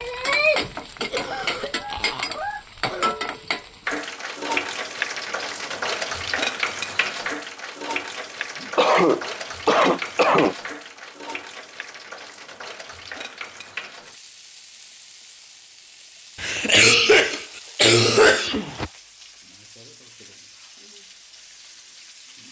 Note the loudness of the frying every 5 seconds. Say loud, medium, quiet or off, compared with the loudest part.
loud, loud, medium, quiet, quiet.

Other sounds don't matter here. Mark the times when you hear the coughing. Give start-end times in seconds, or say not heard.
1.1-3.1, 8.6-10.6, 16.4-18.9.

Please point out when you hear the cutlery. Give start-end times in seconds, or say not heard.
not heard.